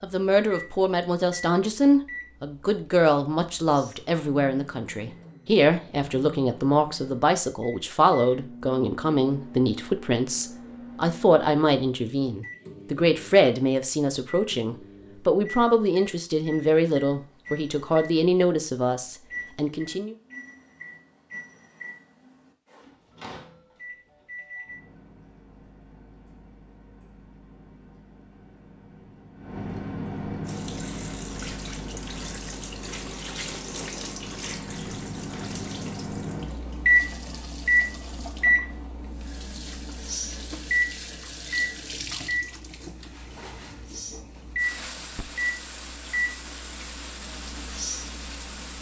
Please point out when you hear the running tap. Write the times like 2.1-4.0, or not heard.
30.4-48.7.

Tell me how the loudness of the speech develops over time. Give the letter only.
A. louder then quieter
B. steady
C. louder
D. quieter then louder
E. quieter
B.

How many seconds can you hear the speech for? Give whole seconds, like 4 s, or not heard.
20 s.